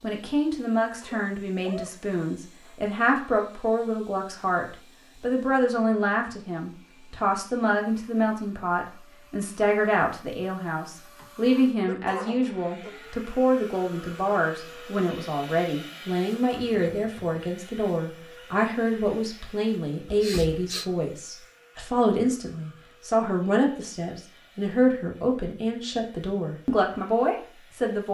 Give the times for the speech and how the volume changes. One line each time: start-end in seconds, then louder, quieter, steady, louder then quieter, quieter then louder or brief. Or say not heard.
0.0-28.0 steady.